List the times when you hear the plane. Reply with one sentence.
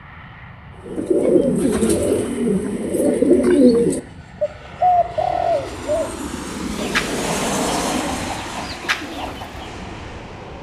You can hear the plane from 0.0 to 10.5 s.